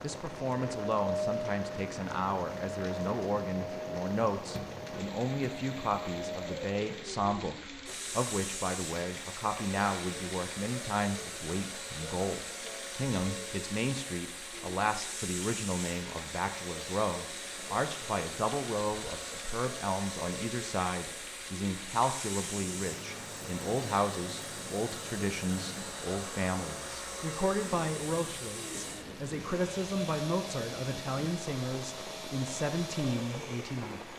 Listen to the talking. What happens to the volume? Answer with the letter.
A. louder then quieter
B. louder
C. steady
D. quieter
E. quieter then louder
C.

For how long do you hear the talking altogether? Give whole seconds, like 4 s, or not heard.
34 s.